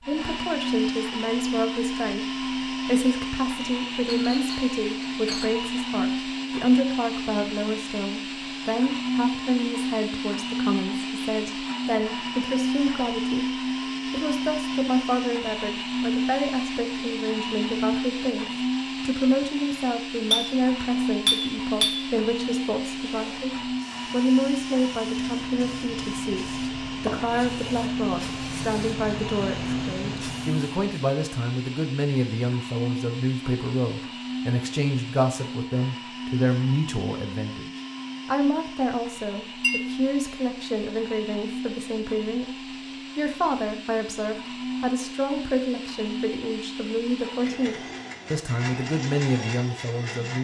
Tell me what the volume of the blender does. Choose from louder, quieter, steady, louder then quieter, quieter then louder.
quieter.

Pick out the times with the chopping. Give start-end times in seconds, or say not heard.
not heard.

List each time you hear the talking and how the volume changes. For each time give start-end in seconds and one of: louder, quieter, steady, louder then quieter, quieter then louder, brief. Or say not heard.
0.0-50.3 steady.